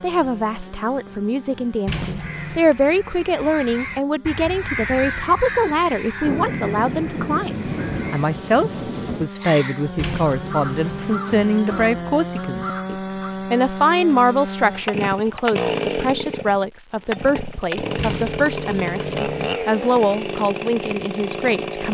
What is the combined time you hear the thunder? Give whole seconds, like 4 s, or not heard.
3 s.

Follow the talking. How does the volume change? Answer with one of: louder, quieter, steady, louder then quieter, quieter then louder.
steady.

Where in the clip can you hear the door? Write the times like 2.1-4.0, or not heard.
1.9-2.6, 9.9-11.2, 17.9-19.4.